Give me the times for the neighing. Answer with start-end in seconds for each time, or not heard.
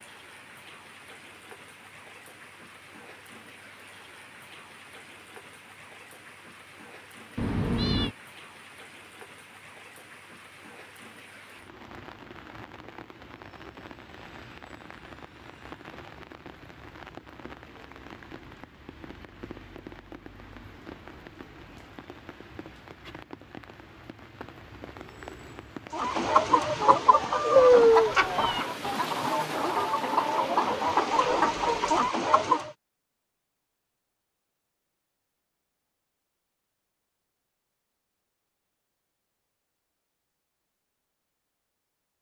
not heard.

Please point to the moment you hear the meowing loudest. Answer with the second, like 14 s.
28 s.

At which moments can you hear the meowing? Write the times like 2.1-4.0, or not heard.
7.3-8.1, 27.6-28.6.